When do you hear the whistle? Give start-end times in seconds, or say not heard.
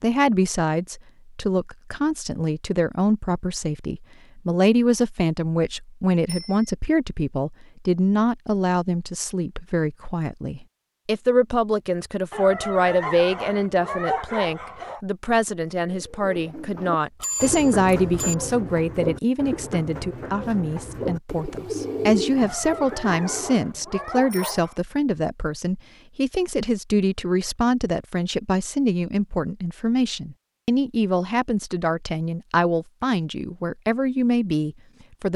not heard.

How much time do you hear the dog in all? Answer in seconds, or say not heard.
5 s.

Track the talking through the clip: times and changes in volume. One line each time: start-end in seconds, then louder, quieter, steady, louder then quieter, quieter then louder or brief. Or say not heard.
0.0-35.3 steady.